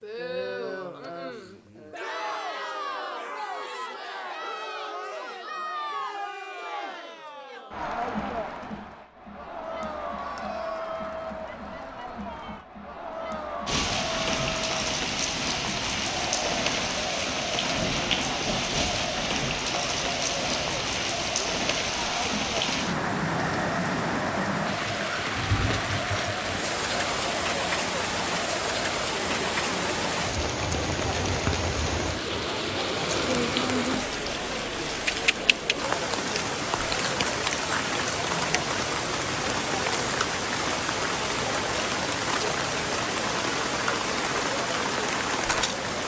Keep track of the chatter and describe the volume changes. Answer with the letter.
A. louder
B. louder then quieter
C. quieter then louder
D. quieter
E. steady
E.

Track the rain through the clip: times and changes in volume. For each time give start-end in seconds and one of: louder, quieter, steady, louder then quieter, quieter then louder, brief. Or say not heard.
13.7-46.0 steady.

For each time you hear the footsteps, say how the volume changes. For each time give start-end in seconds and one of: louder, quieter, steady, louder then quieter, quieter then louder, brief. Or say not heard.
not heard.